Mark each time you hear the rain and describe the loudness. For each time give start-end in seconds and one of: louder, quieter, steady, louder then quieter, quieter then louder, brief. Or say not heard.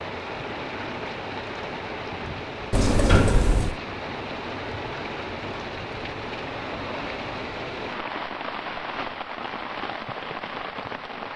0.0-11.3 steady.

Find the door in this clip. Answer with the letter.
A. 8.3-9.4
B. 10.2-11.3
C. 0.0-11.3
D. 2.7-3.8
D.